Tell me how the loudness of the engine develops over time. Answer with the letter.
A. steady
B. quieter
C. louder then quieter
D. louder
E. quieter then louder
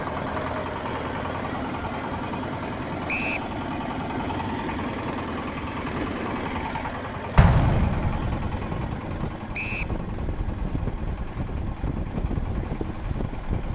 B.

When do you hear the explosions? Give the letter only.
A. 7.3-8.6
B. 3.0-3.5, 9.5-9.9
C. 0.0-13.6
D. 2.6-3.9
A.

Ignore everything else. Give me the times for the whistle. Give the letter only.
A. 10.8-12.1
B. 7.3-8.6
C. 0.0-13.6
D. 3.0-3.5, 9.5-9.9
D.